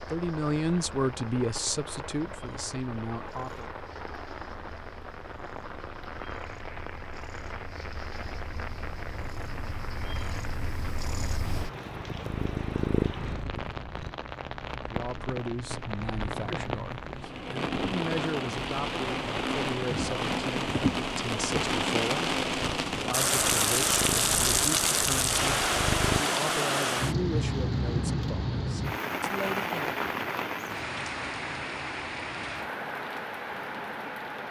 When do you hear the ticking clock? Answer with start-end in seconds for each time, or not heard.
not heard.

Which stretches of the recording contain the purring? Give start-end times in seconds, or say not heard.
0.0-14.1, 22.6-26.2.